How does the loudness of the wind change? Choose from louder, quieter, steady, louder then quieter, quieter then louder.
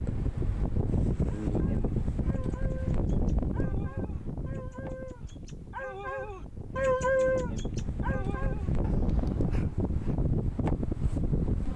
quieter then louder.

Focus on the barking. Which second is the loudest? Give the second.
7 s.